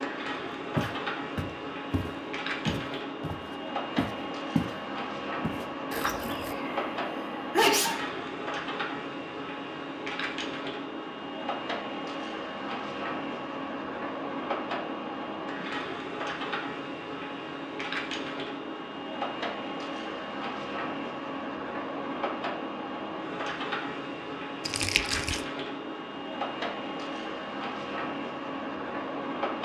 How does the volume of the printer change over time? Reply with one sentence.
The volume of the printer stays about the same.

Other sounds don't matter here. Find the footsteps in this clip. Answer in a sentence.
You can hear the footsteps from 0.8 to 4.8 s and from 5.4 to 6.5 s.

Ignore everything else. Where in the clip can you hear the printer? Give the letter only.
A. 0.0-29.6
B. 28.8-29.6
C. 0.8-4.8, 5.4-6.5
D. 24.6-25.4
A.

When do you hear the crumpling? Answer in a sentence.
The crumpling can be heard from 24.6 to 25.4 s.